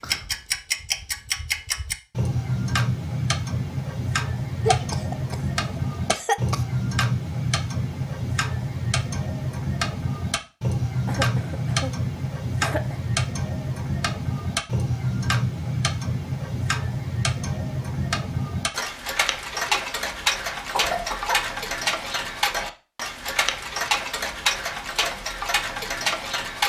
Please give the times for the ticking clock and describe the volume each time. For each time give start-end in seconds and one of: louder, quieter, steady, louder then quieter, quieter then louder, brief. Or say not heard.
0.0-26.6 steady.